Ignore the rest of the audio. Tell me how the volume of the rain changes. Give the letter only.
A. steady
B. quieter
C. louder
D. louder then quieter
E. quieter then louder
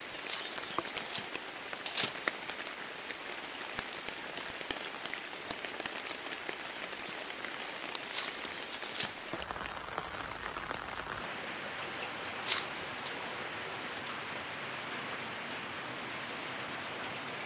A.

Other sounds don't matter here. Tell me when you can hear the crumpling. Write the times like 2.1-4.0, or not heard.
0.2-2.2, 8.1-9.3, 12.4-13.2.